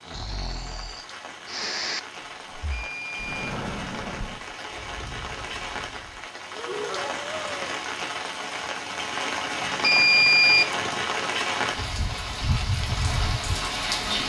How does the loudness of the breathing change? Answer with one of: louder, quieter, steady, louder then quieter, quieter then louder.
quieter then louder.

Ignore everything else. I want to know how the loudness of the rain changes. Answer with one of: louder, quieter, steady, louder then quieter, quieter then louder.
louder.